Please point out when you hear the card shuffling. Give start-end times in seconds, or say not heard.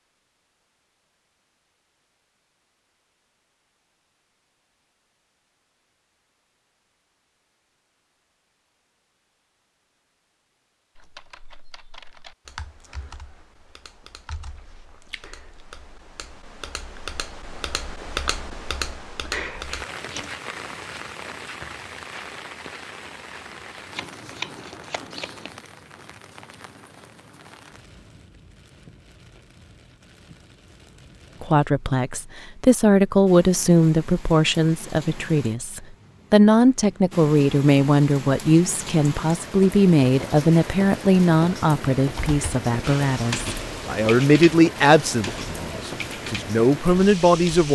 23.9-25.5.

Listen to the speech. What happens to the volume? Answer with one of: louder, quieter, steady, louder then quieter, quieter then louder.
steady.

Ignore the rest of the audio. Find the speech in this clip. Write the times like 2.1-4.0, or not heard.
31.4-47.7.